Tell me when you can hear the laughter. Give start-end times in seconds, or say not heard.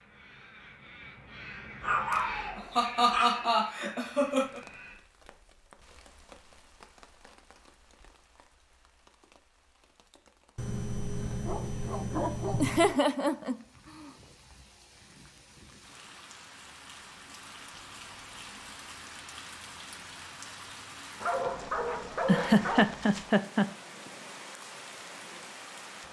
2.1-4.6, 12.6-14.1, 22.2-23.6.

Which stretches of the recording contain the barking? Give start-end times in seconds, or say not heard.
1.8-3.5, 10.6-12.9, 21.2-22.9.